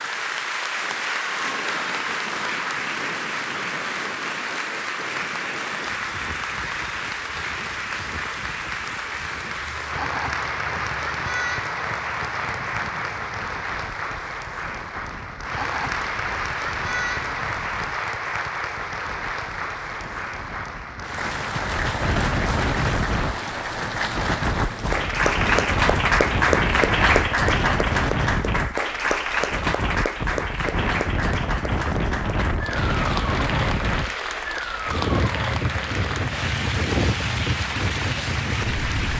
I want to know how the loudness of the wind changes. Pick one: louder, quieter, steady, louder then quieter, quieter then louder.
louder.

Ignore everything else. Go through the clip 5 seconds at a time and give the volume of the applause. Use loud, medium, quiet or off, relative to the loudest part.
medium, medium, medium, medium, medium, loud, medium, medium.